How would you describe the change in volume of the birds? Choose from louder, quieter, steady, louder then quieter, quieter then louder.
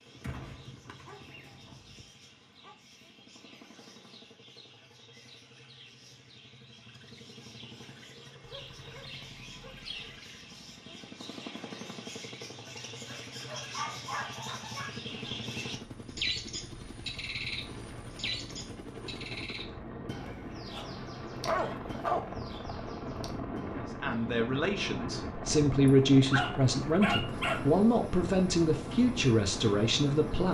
louder then quieter.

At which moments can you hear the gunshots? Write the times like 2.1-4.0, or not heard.
0.1-2.0.